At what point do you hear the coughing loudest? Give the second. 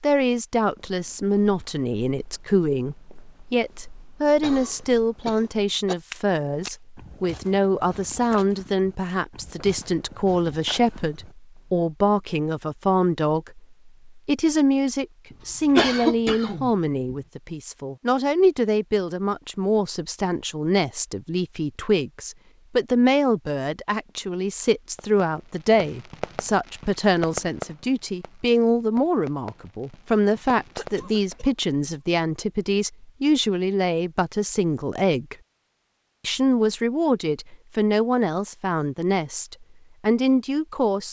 16 s.